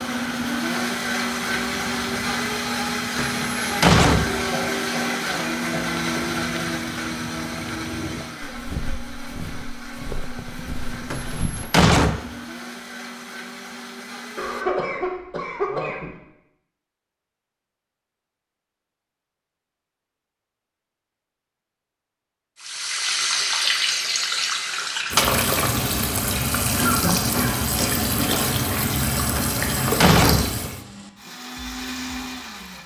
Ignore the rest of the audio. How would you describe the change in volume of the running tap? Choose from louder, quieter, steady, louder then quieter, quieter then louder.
steady.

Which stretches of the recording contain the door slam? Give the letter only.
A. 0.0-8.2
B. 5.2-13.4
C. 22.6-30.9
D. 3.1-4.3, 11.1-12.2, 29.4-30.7
D.